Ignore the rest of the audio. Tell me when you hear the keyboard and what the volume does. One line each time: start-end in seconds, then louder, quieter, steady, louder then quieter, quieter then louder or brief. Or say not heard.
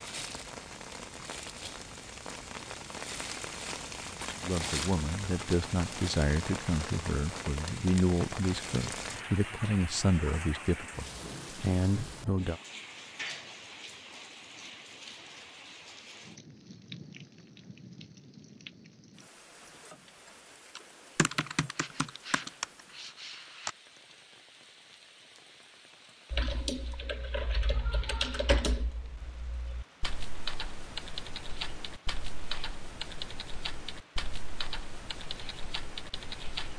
20.8-23.7 brief
26.3-36.7 quieter.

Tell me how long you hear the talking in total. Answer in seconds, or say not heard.
8 s.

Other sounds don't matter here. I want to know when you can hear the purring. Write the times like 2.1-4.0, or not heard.
not heard.